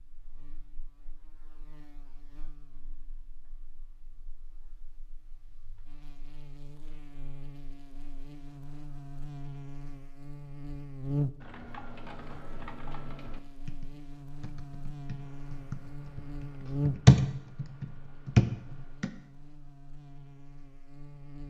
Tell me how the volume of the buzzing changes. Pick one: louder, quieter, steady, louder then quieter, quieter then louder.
louder then quieter.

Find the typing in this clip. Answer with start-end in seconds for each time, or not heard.
11.4-19.1.